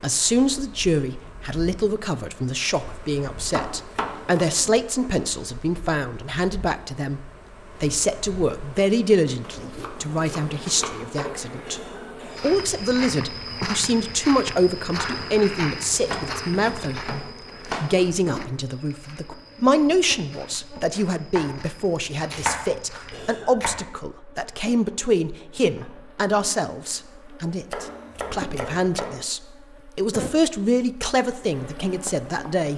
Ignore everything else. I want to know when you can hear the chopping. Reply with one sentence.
The chopping can be heard from 3.5 to 4.5 s, from 9.4 to 11.4 s, from 16.1 to 17.9 s, from 21.4 to 23.8 s and from 27.7 to 29.2 s.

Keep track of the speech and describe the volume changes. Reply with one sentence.
The loudness of the speech stays about the same.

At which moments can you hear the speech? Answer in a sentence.
The speech can be heard from 0.0 to 11.8 s and from 12.4 to 32.7 s.